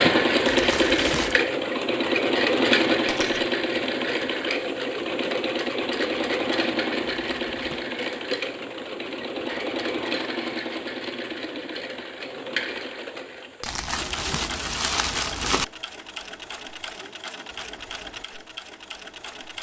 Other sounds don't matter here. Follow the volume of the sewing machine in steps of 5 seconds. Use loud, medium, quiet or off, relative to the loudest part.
loud, medium, medium, quiet.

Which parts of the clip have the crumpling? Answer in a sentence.
You can hear the crumpling from 0.5 to 1.4 s, from 7.2 to 7.8 s and from 13.7 to 15.7 s.